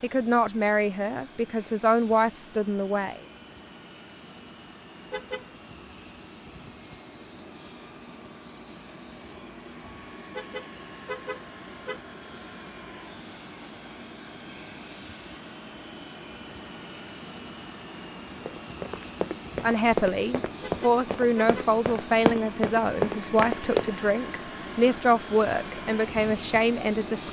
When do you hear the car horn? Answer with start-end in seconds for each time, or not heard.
5.1-5.5, 10.3-12.0, 20.6-21.5.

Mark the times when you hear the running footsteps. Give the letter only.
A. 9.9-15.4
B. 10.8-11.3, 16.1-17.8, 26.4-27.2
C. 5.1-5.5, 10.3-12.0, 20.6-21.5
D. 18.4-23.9
D.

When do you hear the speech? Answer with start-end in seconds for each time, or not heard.
0.0-3.2, 19.6-27.2.